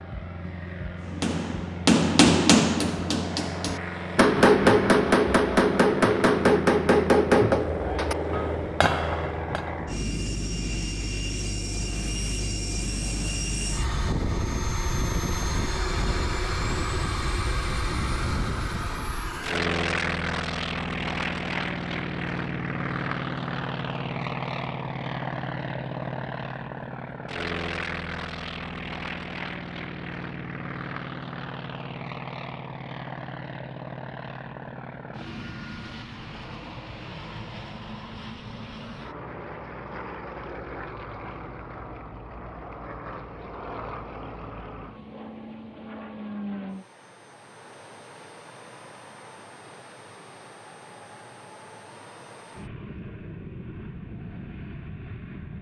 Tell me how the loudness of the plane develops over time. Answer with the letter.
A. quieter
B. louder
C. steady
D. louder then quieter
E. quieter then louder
A.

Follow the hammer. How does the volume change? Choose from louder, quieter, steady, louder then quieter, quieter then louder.
quieter.